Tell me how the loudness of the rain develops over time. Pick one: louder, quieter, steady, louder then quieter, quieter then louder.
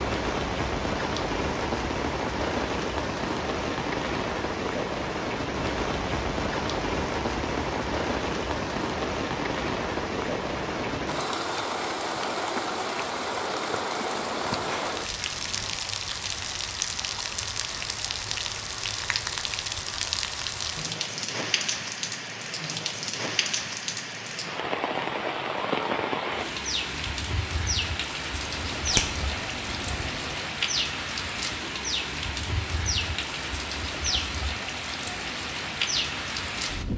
steady.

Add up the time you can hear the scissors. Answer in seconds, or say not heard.
3 s.